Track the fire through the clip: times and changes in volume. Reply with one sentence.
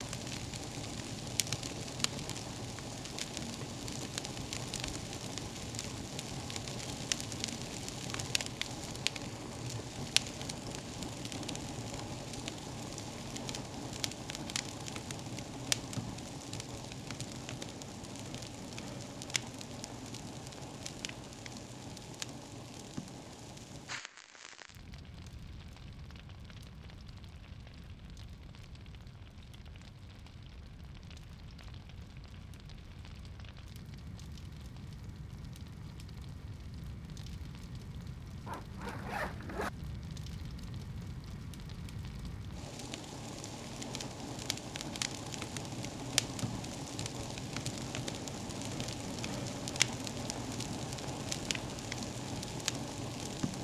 You can hear the fire from 0.0 to 53.5 s, getting quieter then louder.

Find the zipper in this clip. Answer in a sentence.
You can hear the zipper from 38.5 to 39.7 s.